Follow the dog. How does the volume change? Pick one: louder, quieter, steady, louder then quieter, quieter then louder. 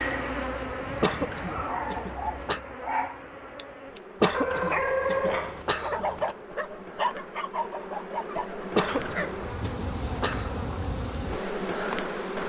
louder then quieter.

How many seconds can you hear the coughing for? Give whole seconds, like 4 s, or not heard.
6 s.